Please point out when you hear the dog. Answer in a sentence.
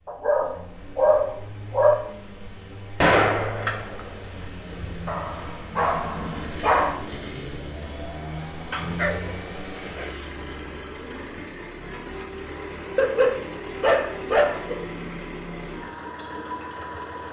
You can hear the dog from 0.1 to 1.9 s, from 5.0 to 7.0 s, from 8.7 to 10.4 s and from 12.9 to 14.8 s.